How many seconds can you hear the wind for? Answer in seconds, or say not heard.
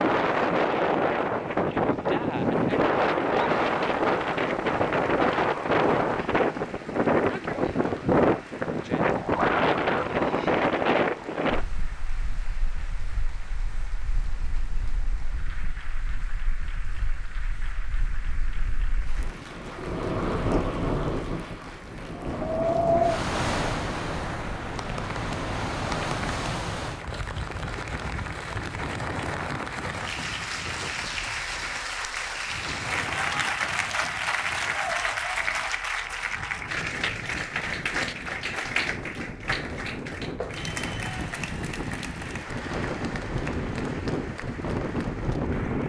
46 s.